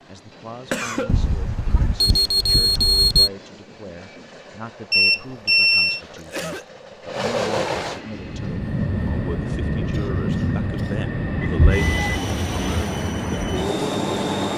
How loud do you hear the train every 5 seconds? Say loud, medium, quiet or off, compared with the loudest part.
quiet, loud, loud.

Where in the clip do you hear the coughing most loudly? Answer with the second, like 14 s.
1 s.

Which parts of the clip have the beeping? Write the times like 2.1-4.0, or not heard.
1.1-3.3, 4.9-6.0, 11.4-12.1.